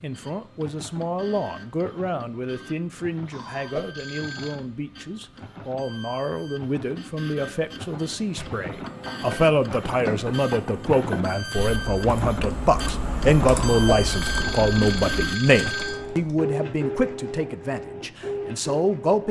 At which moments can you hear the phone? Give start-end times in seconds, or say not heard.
3.3-4.6, 13.4-16.1.